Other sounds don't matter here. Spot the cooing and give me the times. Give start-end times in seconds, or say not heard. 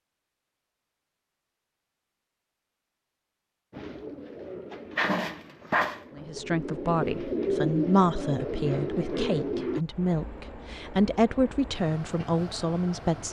3.7-9.8.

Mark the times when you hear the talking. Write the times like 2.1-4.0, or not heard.
6.2-13.2.